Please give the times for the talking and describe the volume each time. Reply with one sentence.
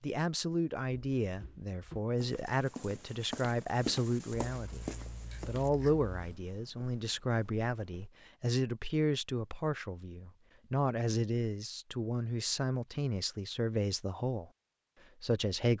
You can hear the talking from 0.0 to 14.5 s, at a steady volume; and briefly from 15.2 to 15.7 s.